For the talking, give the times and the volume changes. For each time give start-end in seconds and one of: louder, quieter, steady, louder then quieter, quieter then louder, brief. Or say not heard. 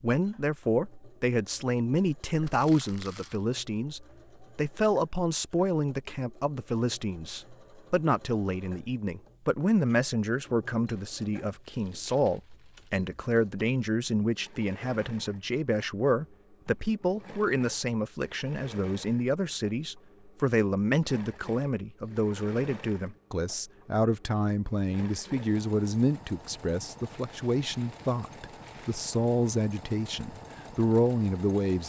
0.0-31.8 steady.